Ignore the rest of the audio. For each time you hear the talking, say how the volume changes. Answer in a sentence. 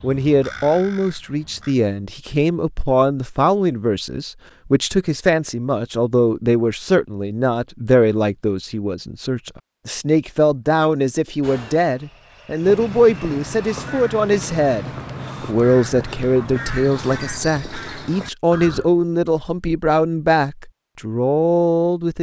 You can hear the talking from 0.0 to 22.1 s, at a steady volume.